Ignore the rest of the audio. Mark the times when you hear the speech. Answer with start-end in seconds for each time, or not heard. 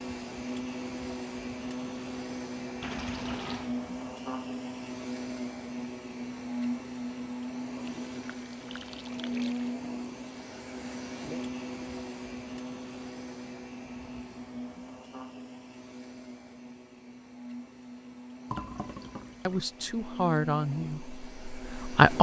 19.4-22.1.